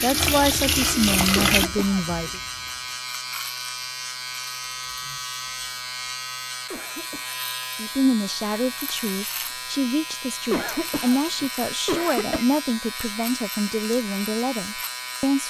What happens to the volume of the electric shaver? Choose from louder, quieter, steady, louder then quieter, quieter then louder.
steady.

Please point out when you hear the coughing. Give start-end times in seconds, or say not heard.
1.4-2.3, 6.7-7.3, 10.5-12.4.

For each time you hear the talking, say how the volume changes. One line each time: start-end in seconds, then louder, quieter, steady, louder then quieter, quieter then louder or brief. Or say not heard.
0.0-2.4 brief
7.8-15.4 steady.